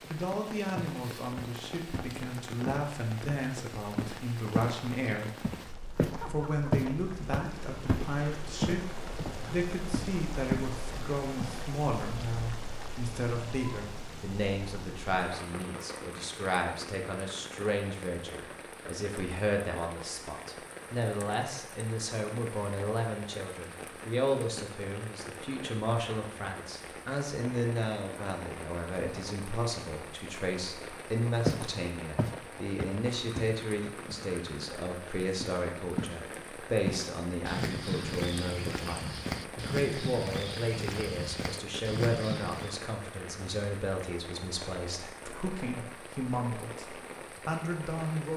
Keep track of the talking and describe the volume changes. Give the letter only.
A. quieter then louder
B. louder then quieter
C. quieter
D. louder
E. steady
E.